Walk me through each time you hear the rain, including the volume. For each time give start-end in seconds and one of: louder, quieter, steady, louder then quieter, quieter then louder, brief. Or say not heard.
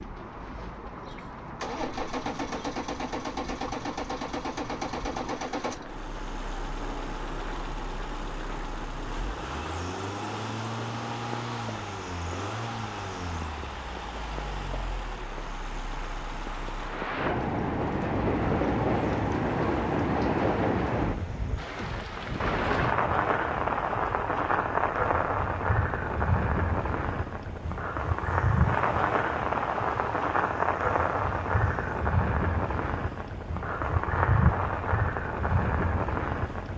0.0-36.7 louder.